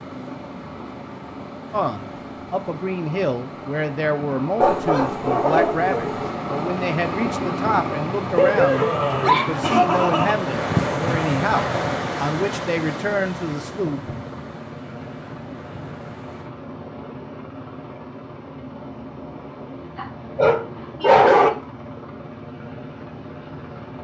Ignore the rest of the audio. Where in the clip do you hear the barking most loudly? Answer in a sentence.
The loudest moment of the barking is at 21 seconds.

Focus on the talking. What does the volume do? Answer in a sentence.
The volume of the talking stays about the same.